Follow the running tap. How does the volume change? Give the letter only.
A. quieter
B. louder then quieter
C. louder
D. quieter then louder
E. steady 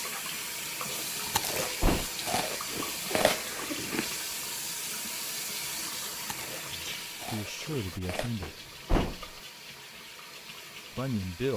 A.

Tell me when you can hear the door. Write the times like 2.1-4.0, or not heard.
1.3-2.1, 8.4-9.2.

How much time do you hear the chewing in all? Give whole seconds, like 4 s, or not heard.
5 s.